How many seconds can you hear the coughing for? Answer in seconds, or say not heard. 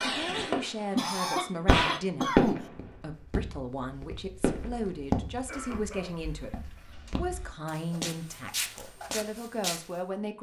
3 s.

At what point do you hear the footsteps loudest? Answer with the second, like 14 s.
5 s.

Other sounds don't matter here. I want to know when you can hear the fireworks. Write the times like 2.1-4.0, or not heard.
0.0-0.7, 1.6-2.7, 4.4-4.8.